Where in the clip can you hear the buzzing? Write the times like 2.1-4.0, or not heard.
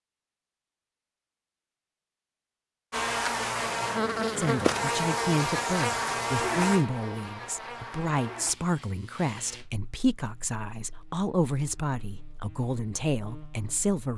2.9-14.0.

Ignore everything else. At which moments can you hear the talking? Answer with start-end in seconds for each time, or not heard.
4.3-14.1.